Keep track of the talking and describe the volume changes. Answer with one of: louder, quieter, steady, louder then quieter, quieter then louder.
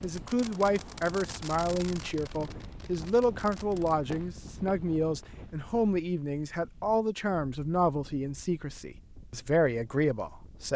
steady.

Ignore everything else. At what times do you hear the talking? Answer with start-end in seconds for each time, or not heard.
0.0-10.7.